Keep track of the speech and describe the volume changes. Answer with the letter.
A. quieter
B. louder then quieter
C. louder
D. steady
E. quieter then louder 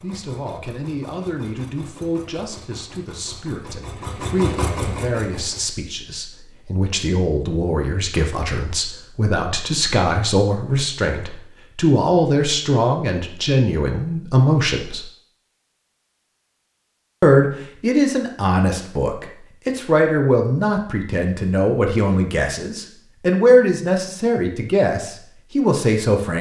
C.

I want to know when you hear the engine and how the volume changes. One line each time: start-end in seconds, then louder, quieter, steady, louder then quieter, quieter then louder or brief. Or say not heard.
0.0-5.7 louder.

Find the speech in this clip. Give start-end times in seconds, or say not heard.
0.0-15.1, 17.2-26.3.